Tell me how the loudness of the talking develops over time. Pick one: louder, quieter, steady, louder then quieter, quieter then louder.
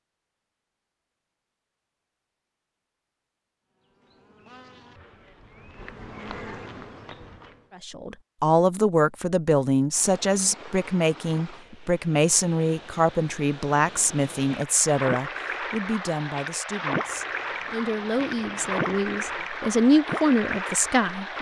quieter then louder.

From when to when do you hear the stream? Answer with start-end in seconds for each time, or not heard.
9.9-21.3.